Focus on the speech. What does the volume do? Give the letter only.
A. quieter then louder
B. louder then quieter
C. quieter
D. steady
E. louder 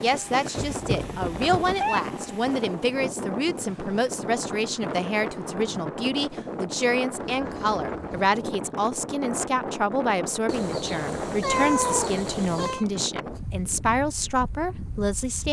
D.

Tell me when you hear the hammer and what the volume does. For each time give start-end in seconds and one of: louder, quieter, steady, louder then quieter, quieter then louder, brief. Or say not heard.
not heard.